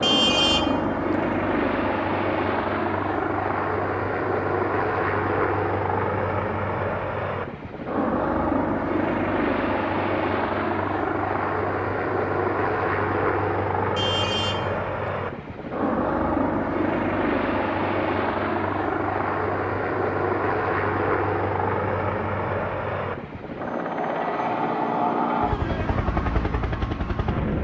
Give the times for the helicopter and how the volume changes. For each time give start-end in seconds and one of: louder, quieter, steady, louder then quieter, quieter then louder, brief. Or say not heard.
0.0-27.5 steady.